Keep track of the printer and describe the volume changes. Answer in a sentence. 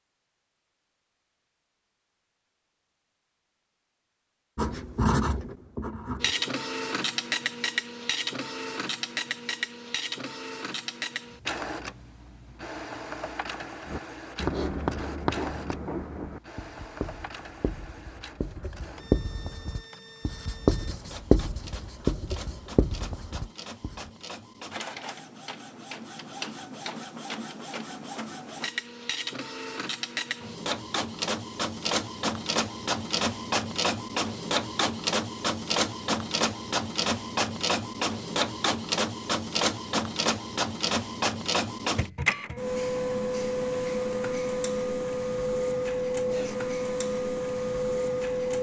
The loudness of the printer goes down, then up.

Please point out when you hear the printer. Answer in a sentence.
The printer can be heard from 6.2 to 48.5 s.